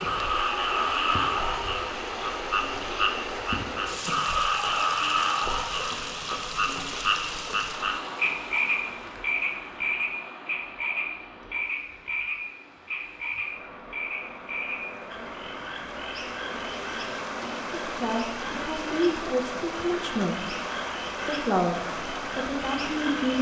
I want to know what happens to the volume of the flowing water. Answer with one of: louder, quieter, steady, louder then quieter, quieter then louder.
quieter then louder.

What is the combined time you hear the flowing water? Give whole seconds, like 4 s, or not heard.
23 s.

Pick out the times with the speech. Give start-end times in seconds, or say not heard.
17.9-20.6, 21.2-23.3.